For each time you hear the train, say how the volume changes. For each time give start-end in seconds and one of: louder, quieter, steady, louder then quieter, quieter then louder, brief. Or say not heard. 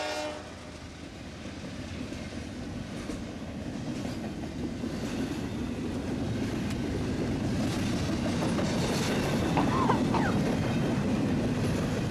0.0-12.0 louder.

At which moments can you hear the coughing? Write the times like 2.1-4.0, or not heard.
9.6-10.4.